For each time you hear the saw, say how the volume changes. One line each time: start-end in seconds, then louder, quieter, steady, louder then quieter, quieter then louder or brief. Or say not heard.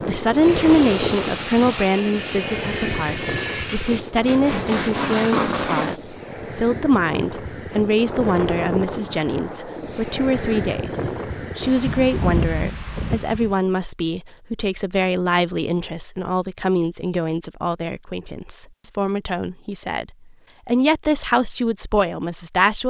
0.4-6.0 louder.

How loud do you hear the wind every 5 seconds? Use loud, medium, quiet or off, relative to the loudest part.
loud, loud, loud, off, off.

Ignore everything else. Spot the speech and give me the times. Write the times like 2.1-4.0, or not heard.
0.1-22.8.